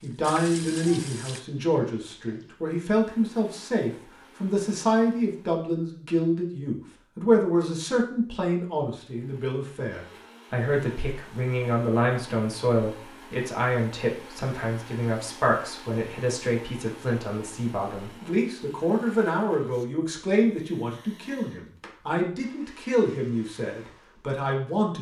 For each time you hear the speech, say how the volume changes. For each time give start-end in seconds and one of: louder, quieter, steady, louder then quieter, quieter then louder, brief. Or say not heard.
0.0-24.9 steady.